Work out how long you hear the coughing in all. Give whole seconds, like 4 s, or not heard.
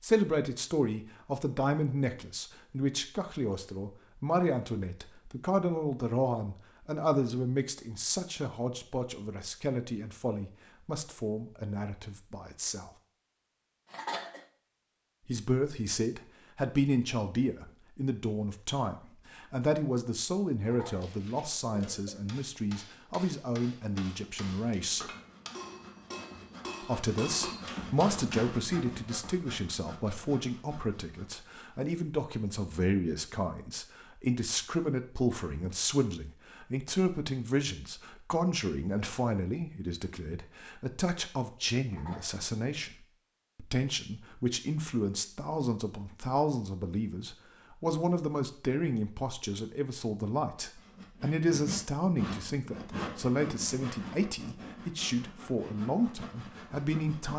3 s.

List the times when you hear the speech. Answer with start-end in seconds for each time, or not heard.
0.0-12.9, 15.2-25.1, 26.8-57.3.